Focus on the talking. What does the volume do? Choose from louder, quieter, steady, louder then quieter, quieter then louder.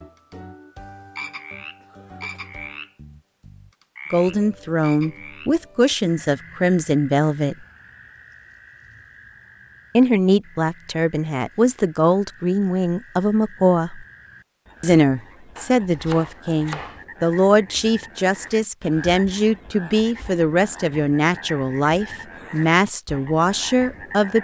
steady.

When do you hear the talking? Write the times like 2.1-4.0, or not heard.
4.1-7.5, 9.9-14.1, 14.8-24.3.